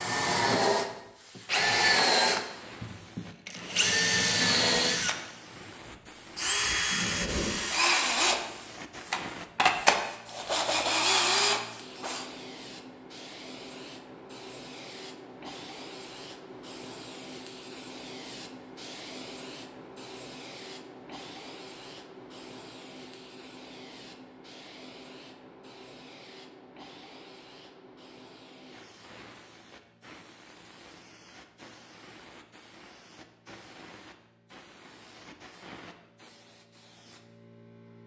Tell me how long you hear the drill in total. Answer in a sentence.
The drill can be heard for 12 seconds in total.